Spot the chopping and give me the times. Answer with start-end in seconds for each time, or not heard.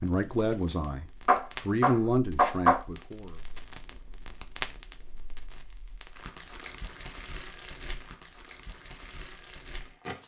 1.2-2.8.